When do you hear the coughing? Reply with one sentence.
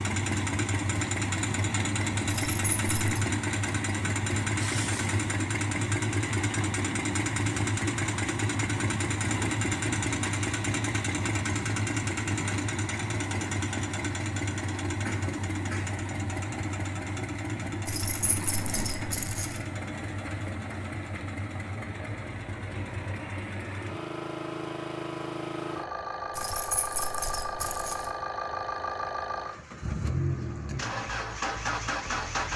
You can hear the coughing from 15.1 to 16.1 s.